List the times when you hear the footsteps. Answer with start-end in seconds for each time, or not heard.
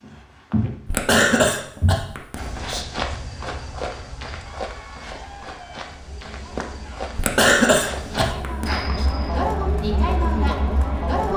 0.0-9.4.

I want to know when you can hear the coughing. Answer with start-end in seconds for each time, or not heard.
0.8-2.9, 7.2-9.1.